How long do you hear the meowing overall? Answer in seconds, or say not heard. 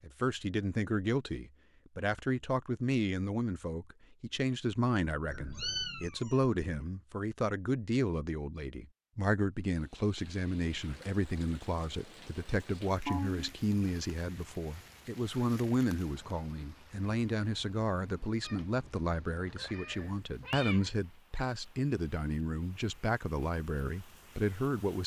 4 s.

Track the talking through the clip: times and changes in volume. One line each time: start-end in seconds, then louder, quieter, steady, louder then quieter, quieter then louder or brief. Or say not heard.
0.0-25.0 steady.